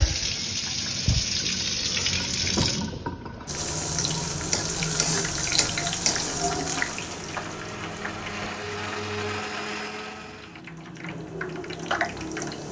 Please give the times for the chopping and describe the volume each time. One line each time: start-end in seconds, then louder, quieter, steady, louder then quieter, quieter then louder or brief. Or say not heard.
not heard.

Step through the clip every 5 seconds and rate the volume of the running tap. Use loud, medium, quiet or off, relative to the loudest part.
loud, loud, medium.